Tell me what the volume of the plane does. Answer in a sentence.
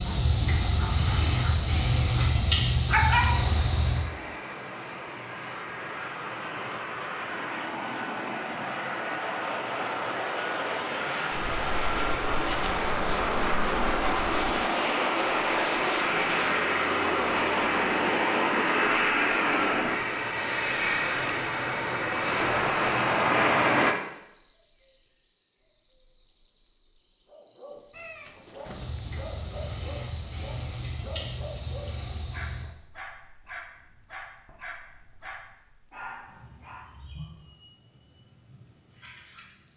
The volume of the plane goes up.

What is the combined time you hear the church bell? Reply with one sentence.
The church bell can't be heard in this clip.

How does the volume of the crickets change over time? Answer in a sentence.
The loudness of the crickets goes down.